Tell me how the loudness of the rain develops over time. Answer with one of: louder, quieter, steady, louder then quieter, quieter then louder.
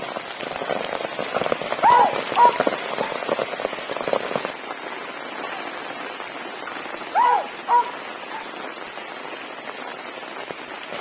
quieter.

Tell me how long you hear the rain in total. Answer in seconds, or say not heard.
11 s.